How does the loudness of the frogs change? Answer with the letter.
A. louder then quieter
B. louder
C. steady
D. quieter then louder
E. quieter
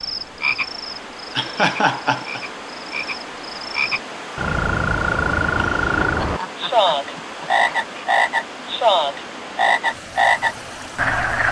B.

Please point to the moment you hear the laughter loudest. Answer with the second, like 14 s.
2 s.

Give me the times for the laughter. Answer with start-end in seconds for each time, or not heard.
1.4-2.4, 6.0-7.8.